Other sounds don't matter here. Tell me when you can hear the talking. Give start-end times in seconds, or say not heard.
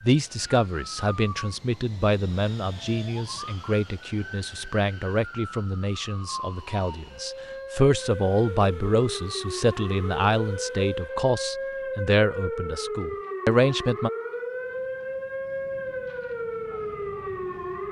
0.0-14.1.